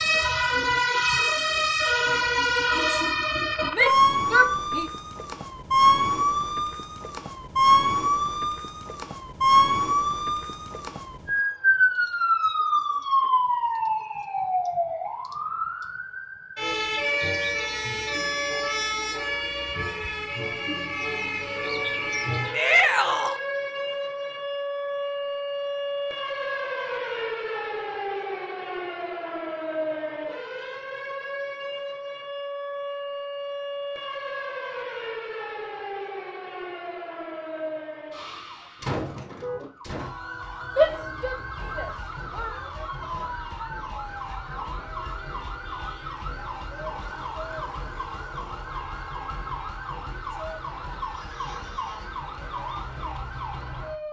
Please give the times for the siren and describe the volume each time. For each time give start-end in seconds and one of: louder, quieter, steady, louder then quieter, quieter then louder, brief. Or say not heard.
0.0-54.0 quieter.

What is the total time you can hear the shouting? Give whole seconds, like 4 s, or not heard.
4 s.